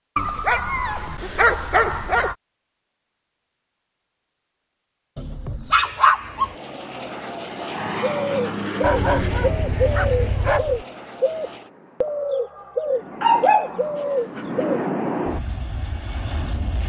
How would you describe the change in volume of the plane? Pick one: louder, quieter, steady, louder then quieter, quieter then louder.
quieter then louder.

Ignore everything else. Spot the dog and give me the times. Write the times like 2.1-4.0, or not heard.
0.1-2.4, 5.2-6.5, 8.8-10.8, 13.2-14.7.